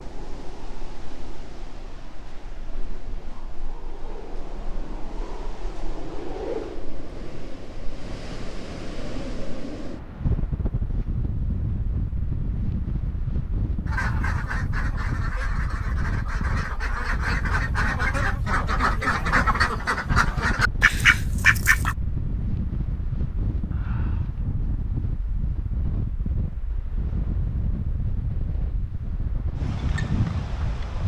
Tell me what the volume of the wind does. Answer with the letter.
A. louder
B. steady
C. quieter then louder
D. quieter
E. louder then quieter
A.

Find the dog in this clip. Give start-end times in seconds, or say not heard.
not heard.